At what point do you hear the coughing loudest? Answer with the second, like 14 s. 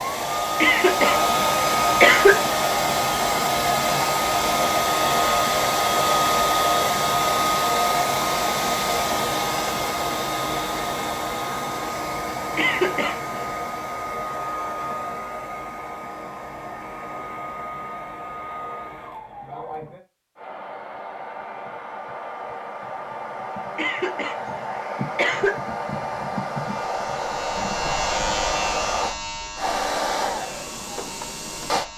2 s.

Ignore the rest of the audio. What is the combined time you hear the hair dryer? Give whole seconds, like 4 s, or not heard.
32 s.